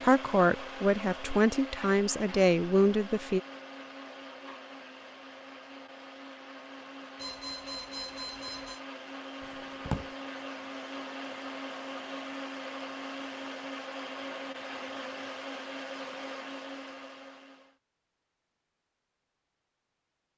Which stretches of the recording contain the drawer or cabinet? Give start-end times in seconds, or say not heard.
9.4-10.1.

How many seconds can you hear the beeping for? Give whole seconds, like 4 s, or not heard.
2 s.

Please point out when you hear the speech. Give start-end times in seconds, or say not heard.
0.0-3.4.